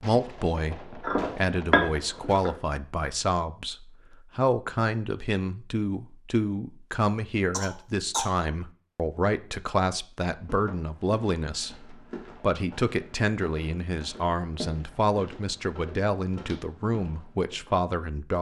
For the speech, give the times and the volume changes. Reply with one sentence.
The speech can be heard from 0.0 to 18.3 s, at a steady volume.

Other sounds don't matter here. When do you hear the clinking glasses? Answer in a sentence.
The clinking glasses can be heard from 1.0 to 2.5 s.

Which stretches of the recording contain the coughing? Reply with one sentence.
You can hear the coughing from 7.5 to 8.3 s.